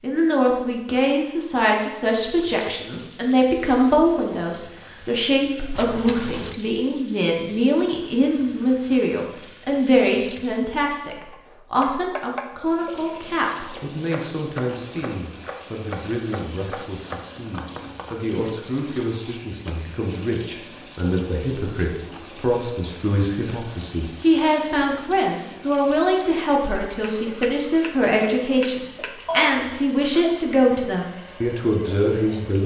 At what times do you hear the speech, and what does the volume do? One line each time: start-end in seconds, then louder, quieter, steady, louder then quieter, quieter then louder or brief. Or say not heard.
0.0-32.6 quieter then louder.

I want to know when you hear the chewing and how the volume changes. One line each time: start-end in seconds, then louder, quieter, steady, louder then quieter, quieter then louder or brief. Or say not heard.
not heard.